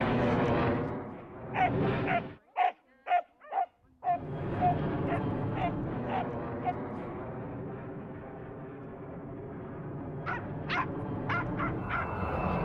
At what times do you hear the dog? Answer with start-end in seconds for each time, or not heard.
1.5-6.8, 10.2-12.5.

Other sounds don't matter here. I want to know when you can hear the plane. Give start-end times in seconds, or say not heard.
0.0-2.4, 4.0-12.5.